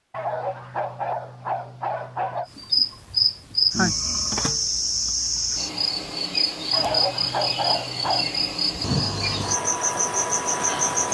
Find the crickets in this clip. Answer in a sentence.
The crickets can be heard from 2.5 to 11.0 s.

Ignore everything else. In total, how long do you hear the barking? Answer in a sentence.
The barking can be heard for 4 seconds in total.